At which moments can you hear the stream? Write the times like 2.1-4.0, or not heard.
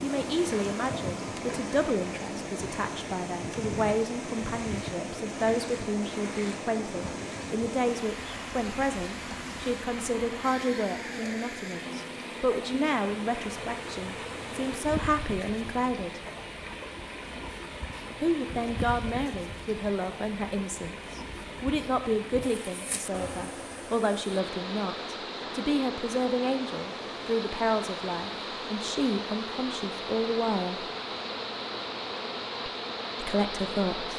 0.0-34.1.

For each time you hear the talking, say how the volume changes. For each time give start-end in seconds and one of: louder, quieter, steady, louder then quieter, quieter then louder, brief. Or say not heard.
0.0-16.2 steady
18.2-30.9 steady
33.2-34.1 brief.